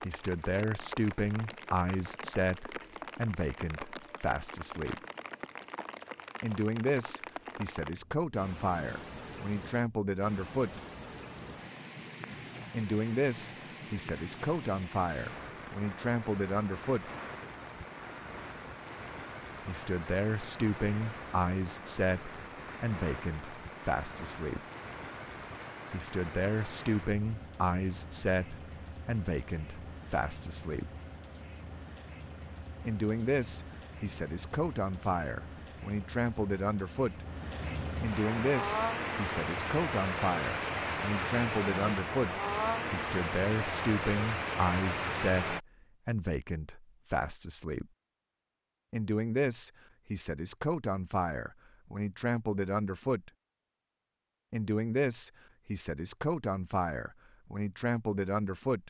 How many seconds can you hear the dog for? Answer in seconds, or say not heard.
not heard.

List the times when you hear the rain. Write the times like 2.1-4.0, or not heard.
0.0-45.6.